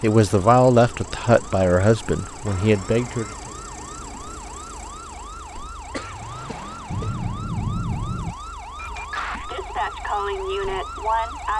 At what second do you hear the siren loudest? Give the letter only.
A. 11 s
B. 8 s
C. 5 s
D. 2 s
A.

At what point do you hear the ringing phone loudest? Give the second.
8 s.